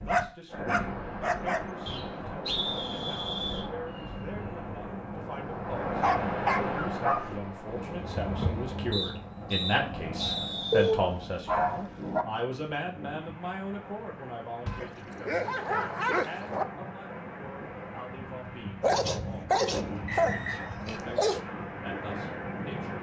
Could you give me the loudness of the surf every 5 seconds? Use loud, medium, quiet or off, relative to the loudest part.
loud, loud, medium, medium, loud.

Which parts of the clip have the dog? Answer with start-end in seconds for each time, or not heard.
0.1-1.6, 6.0-7.4, 10.7-12.2, 14.7-16.6, 18.8-21.4.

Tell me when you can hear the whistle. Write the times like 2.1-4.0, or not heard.
1.9-3.6, 8.9-10.9, 19.6-20.6.